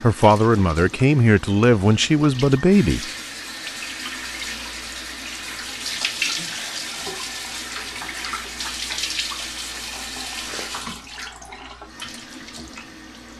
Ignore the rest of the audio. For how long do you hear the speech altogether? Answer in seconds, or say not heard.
3 s.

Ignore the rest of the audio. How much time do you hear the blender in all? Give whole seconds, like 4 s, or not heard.
not heard.